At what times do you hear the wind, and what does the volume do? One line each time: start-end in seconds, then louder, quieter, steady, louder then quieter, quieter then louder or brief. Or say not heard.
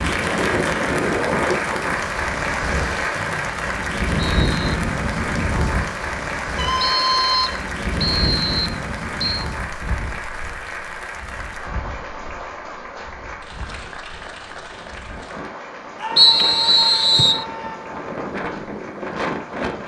0.0-19.8 quieter then louder.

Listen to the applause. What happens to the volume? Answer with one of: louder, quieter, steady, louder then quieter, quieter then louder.
quieter.